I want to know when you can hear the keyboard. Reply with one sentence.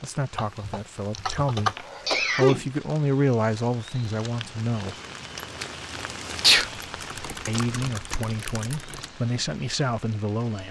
You can hear the keyboard from 0.3 to 2.2 s and from 6.8 to 9.1 s.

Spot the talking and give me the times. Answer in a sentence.
You can hear the talking from 0.0 to 5.0 s and from 7.5 to 10.6 s.